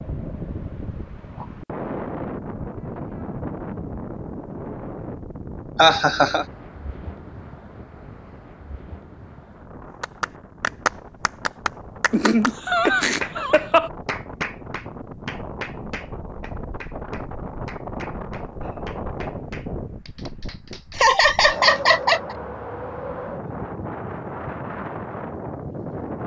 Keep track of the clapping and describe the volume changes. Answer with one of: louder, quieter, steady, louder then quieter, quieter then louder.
quieter.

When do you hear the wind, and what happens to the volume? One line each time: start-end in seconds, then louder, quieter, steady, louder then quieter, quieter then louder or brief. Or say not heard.
0.0-26.2 quieter then louder.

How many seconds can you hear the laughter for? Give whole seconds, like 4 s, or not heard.
4 s.